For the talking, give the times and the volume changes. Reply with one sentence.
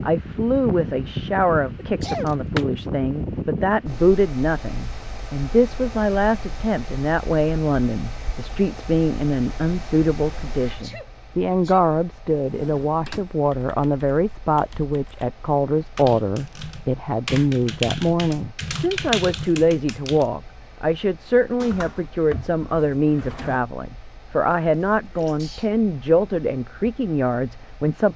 You can hear the talking from 0.0 to 28.1 s, at a steady volume.